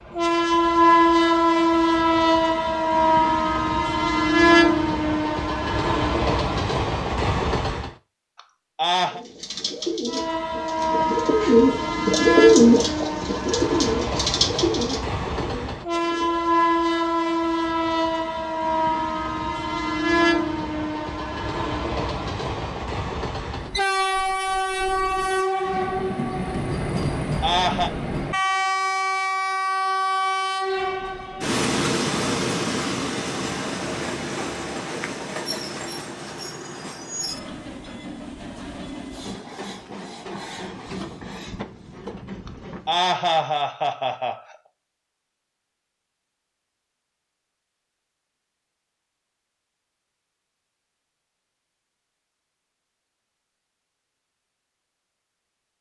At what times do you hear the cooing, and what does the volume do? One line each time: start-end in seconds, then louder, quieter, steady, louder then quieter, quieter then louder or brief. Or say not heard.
9.0-16.4 louder then quieter.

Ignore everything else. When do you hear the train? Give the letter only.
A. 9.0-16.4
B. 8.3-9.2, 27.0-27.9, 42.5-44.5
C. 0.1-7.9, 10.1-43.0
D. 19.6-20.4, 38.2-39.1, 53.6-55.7
C.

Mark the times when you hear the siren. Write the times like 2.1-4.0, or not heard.
not heard.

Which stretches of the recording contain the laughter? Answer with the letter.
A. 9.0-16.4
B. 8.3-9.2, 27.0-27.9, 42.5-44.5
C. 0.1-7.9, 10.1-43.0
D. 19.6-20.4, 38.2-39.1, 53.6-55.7
B.